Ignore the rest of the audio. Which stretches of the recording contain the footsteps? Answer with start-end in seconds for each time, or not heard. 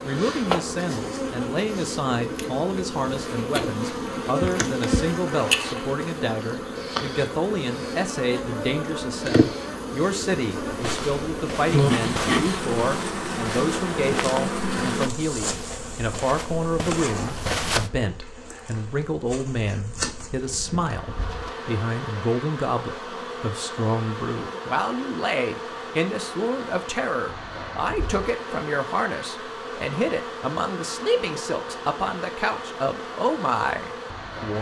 10.7-17.9.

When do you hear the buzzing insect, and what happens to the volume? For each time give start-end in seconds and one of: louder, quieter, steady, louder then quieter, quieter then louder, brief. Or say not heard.
0.0-34.5 quieter.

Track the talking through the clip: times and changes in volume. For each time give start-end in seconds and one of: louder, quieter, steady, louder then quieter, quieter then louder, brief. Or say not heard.
0.0-34.5 steady.